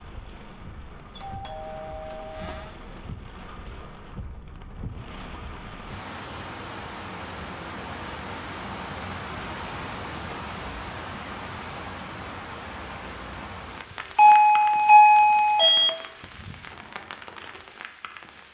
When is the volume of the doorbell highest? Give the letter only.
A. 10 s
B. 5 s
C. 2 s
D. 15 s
D.